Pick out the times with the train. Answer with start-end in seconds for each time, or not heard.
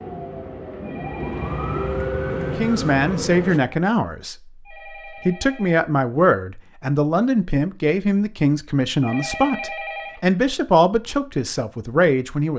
0.0-3.6.